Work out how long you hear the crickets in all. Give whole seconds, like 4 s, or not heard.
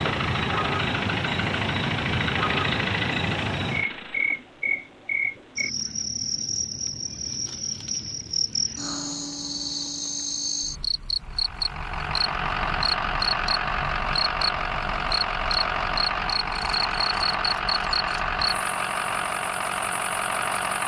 21 s.